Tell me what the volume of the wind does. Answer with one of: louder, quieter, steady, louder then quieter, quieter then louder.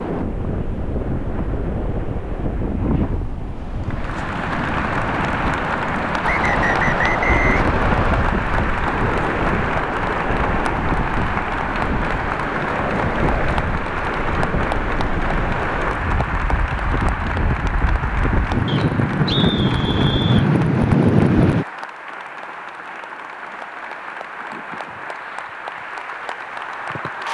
louder.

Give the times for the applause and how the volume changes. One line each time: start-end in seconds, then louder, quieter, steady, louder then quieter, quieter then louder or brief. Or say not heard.
3.9-27.2 quieter.